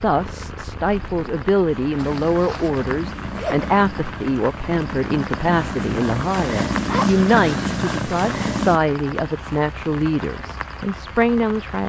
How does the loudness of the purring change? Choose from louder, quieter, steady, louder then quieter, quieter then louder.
louder.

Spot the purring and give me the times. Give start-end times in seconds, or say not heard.
0.0-8.8.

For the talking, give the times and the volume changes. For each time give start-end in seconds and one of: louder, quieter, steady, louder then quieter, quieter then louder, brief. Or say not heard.
0.0-11.8 steady.